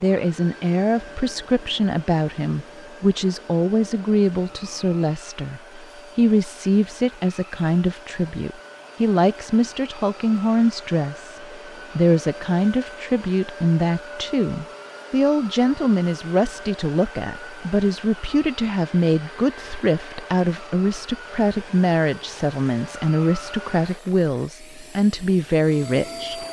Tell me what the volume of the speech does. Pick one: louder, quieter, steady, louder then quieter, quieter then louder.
steady.